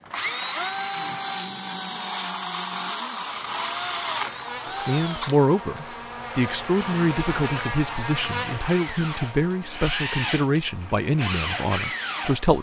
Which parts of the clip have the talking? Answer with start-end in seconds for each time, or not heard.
4.8-12.5.